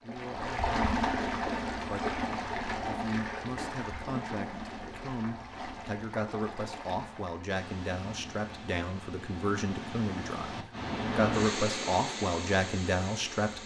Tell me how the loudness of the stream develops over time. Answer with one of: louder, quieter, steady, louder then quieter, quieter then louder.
quieter then louder.